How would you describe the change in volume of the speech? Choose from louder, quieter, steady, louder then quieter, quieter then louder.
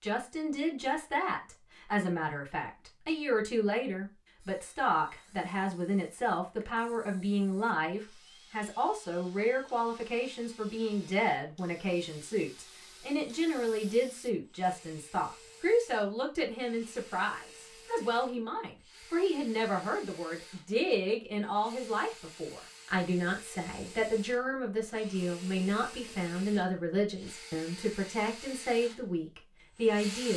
steady.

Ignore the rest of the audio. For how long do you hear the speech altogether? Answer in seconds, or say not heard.
30 s.